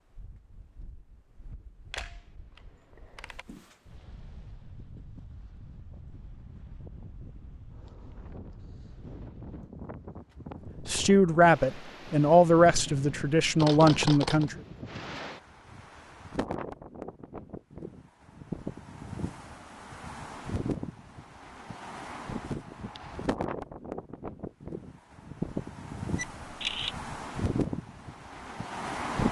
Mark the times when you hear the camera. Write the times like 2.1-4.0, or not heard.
1.9-3.5, 13.6-14.5, 26.1-27.1.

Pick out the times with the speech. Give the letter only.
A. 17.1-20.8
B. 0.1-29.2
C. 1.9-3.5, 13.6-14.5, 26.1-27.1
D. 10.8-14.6
D.